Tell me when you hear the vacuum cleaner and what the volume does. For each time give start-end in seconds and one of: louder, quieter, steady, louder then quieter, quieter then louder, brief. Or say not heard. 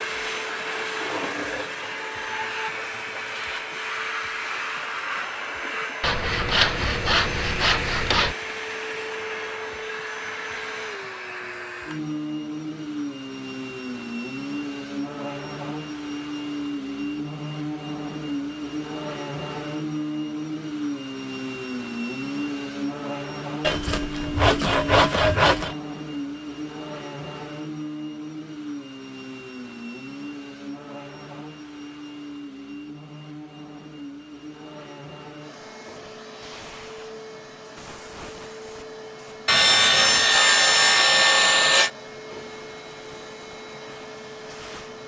0.0-45.0 quieter.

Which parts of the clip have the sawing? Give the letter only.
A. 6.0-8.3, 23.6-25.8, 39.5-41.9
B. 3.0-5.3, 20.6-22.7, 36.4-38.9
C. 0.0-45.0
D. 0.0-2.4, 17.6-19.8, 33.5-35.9
A.